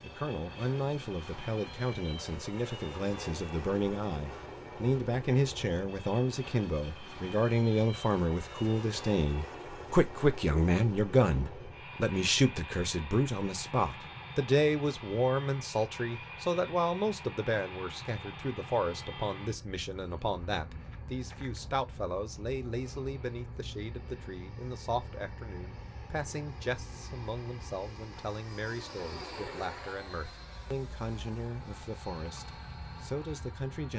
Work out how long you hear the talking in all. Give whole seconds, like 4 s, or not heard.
34 s.